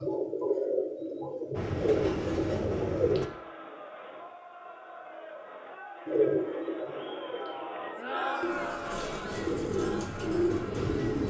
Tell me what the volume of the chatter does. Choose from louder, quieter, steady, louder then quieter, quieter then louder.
louder then quieter.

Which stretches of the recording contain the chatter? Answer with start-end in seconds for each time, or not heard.
2.6-11.1.